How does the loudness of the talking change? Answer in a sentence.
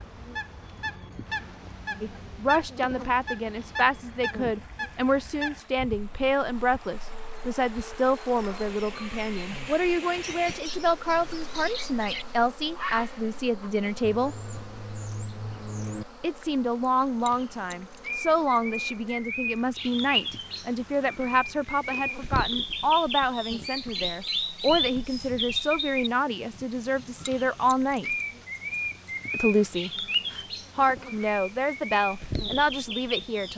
The loudness of the talking stays about the same.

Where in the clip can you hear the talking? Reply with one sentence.
The talking can be heard from 2.0 to 14.3 s, from 16.2 to 28.1 s and from 29.3 to 33.5 s.